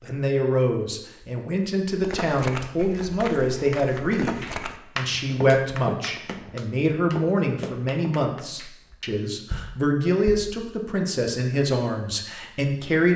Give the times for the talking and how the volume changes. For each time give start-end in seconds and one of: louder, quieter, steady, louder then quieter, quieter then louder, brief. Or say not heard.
0.0-13.1 steady.